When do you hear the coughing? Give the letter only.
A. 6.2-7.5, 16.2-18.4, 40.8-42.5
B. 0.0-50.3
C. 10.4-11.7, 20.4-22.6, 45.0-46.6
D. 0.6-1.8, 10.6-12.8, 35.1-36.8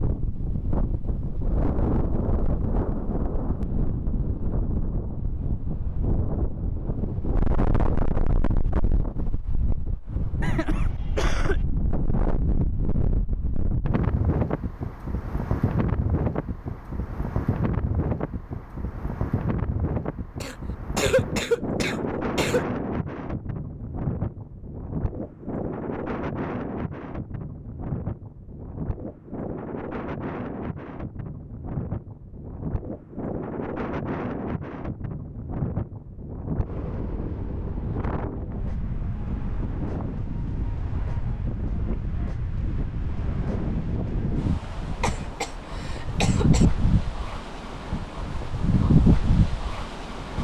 C.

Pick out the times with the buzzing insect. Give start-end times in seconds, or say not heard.
not heard.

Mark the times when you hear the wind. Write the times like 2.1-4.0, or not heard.
0.0-50.3.